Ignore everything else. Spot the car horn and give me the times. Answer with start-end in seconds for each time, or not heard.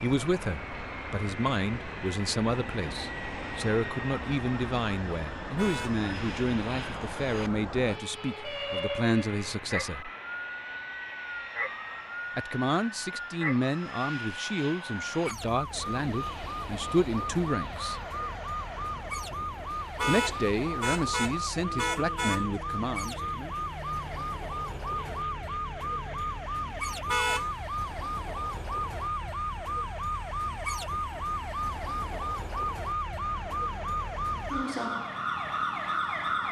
5.5-6.0, 19.9-22.6, 27.1-27.6.